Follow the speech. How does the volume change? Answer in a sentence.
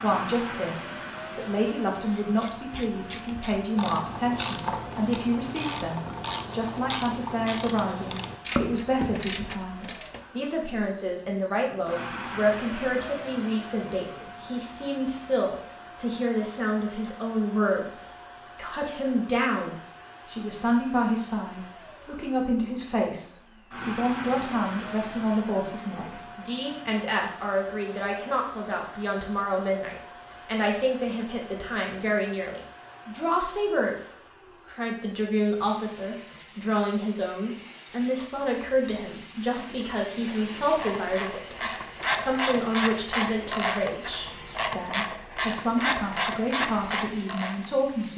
The volume of the speech stays about the same.